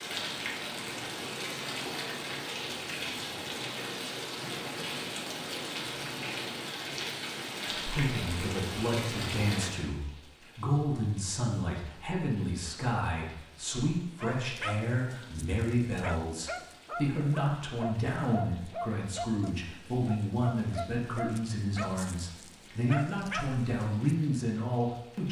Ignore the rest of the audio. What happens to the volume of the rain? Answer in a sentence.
The loudness of the rain goes down.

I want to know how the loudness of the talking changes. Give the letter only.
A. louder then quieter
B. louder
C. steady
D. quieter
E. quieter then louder
C.